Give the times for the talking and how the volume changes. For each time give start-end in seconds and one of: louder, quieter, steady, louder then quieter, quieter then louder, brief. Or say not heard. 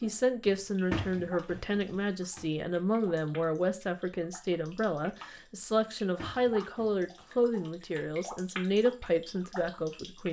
0.0-10.2 steady.